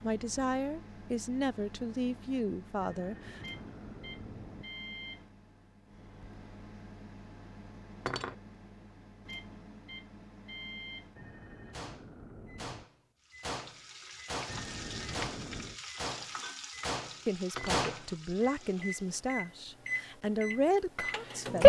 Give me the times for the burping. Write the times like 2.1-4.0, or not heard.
not heard.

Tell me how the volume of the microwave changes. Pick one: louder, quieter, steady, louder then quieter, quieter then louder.
louder.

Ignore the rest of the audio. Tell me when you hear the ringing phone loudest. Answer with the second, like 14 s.
15 s.